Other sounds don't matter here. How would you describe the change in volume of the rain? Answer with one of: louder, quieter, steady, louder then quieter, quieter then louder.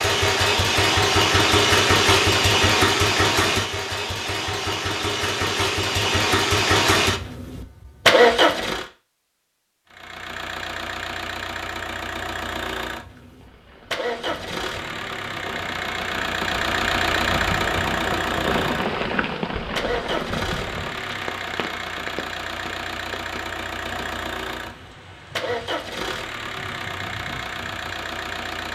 louder then quieter.